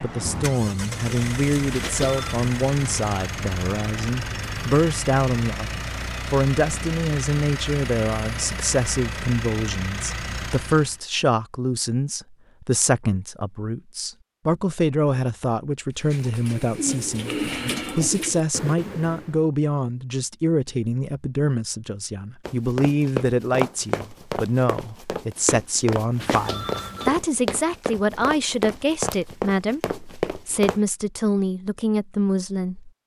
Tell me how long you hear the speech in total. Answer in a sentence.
You can hear the speech for 33 seconds altogether.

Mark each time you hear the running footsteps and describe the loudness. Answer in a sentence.
You can hear the running footsteps from 22.4 to 30.8 s, getting quieter then louder.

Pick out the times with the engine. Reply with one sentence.
You can hear the engine from 0.0 to 11.0 s.